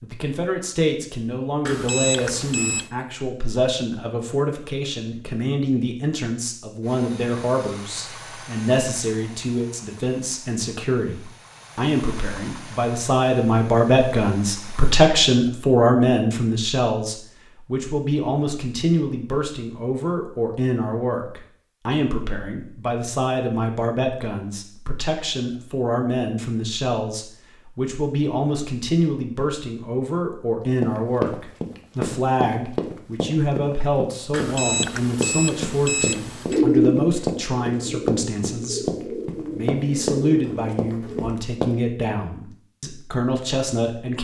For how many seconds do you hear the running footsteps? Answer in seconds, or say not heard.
11 s.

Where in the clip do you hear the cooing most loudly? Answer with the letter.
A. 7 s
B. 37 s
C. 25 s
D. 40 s
B.